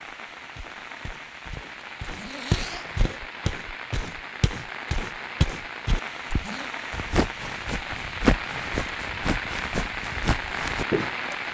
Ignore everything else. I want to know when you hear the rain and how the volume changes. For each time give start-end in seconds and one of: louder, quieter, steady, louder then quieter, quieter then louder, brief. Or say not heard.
0.0-11.4 louder.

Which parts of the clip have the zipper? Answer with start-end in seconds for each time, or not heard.
2.0-3.1, 6.1-6.8.